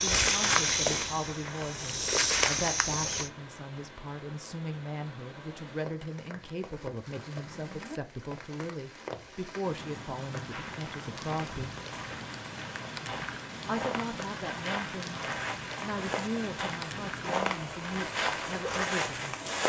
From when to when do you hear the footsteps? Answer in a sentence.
You can hear the footsteps from 0.0 to 3.3 s and from 10.4 to 19.6 s.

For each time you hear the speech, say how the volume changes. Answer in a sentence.
The speech can be heard from 0.0 to 11.8 s, at a steady volume; and from 13.7 to 19.4 s, at a steady volume.